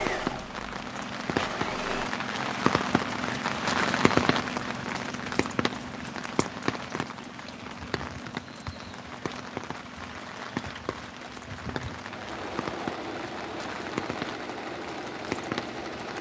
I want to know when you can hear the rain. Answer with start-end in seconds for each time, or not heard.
0.0-16.1.